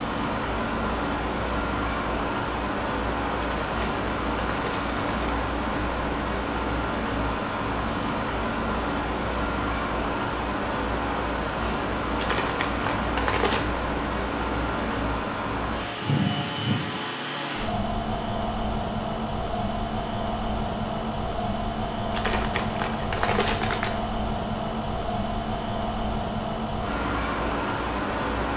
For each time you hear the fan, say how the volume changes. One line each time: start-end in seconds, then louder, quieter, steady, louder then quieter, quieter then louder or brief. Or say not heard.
0.0-28.5 steady.